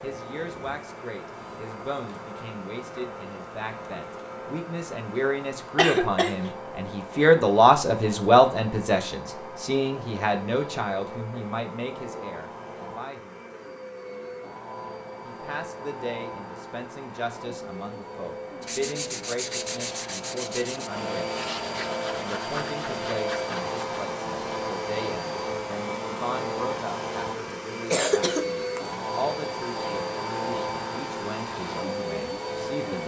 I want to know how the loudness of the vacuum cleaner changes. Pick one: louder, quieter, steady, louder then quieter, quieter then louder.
louder.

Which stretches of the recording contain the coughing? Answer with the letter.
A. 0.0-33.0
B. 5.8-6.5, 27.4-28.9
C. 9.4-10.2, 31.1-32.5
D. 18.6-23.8
B.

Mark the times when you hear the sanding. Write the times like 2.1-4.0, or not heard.
18.6-23.8.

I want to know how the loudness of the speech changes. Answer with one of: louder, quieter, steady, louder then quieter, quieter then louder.
louder then quieter.